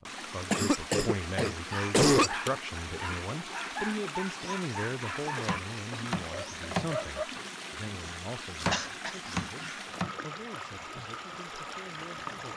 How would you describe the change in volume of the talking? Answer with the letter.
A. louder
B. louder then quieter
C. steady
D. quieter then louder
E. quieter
E.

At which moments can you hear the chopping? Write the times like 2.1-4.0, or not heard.
5.4-10.2.